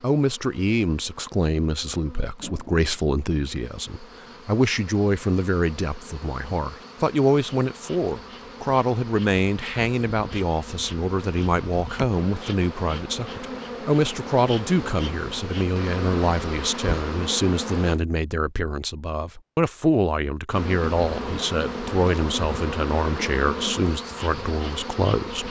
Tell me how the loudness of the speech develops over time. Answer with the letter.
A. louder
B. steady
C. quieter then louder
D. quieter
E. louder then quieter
B.